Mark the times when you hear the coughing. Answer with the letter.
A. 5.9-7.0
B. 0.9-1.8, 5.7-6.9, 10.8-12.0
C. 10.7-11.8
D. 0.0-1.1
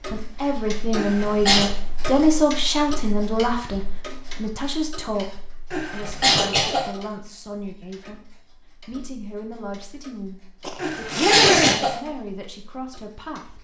B.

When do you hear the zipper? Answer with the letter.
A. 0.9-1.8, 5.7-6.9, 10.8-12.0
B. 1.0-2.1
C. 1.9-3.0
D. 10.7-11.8
D.